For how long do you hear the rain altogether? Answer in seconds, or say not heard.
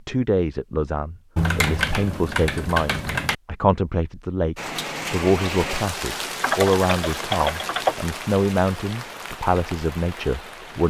6 s.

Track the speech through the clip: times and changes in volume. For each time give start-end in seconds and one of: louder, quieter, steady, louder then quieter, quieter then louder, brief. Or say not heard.
0.1-10.8 steady.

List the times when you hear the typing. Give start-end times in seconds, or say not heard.
1.4-3.4, 6.4-8.0.